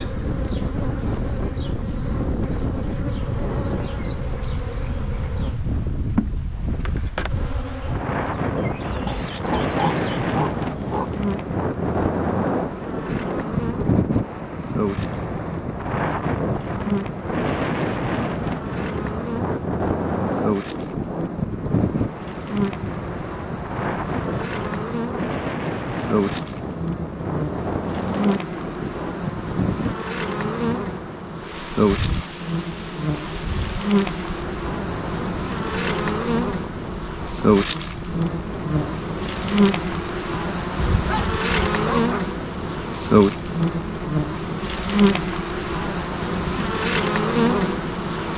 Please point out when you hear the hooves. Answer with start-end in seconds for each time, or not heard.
not heard.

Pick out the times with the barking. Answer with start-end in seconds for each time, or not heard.
9.1-11.1, 40.9-42.2.